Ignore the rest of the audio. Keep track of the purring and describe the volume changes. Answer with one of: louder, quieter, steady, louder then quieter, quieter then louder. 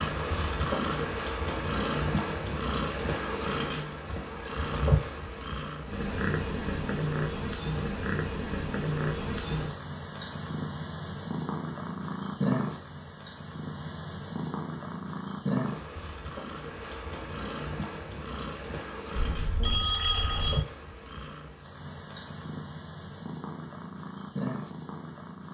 quieter.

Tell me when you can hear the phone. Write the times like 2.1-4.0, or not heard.
19.1-20.6.